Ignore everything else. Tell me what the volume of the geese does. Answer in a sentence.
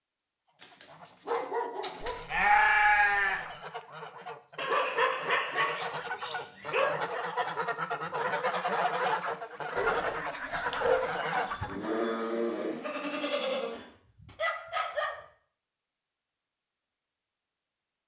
The loudness of the geese goes up.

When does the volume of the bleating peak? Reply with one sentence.
The loudest moment of the bleating is at 3 seconds.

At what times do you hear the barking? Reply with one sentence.
The barking can be heard from 0.6 to 2.2 s, from 4.5 to 7.0 s, from 9.8 to 11.7 s and from 13.8 to 15.2 s.